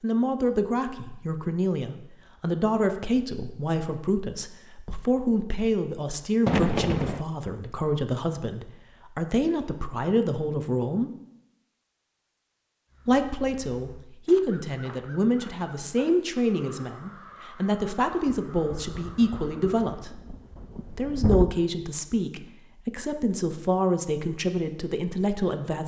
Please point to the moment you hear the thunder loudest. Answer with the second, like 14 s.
7 s.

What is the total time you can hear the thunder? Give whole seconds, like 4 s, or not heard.
4 s.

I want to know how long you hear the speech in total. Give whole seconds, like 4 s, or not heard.
23 s.